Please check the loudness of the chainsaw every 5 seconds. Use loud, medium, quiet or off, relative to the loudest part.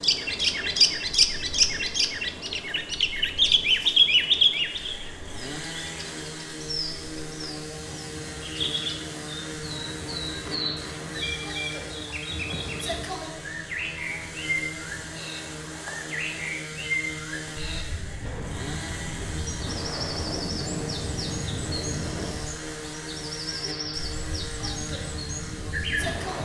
quiet, loud, loud, loud, loud, loud.